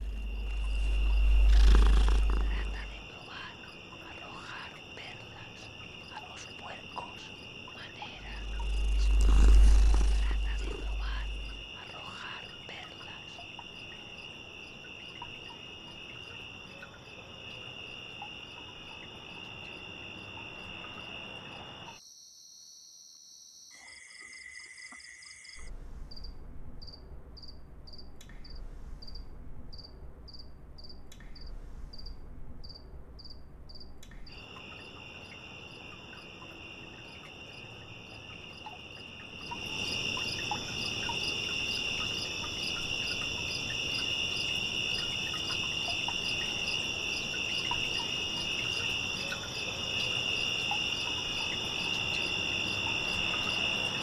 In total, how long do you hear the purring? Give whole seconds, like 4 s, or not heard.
6 s.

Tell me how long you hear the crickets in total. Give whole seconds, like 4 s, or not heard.
54 s.